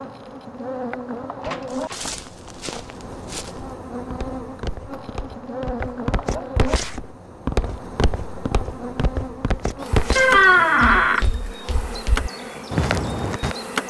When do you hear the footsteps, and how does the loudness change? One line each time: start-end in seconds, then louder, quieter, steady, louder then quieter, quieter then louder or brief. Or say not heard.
1.6-13.6 louder.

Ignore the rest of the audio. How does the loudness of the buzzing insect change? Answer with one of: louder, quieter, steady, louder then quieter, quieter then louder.
steady.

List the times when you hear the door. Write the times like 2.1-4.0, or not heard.
1.4-2.0, 10.2-11.2.